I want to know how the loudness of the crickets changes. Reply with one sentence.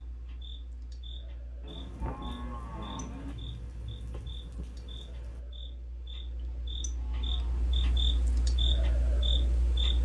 The loudness of the crickets goes up.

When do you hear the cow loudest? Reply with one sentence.
The volume of the cow peaks at 3 seconds.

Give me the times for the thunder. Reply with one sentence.
You can hear the thunder from 1.6 to 5.4 s.